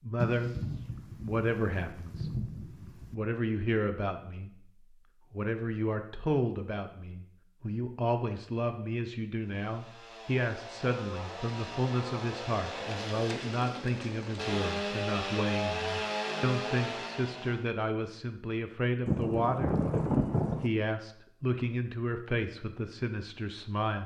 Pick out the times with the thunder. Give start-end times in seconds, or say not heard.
0.1-3.1, 19.1-20.7.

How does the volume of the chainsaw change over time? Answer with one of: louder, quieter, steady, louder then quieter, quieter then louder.
louder.